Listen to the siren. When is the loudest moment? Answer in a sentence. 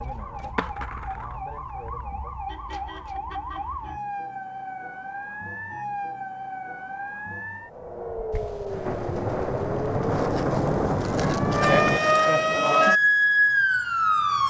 The loudest moment of the siren is at 13 seconds.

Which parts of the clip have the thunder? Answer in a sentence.
You can hear the thunder from 8.3 to 12.0 s.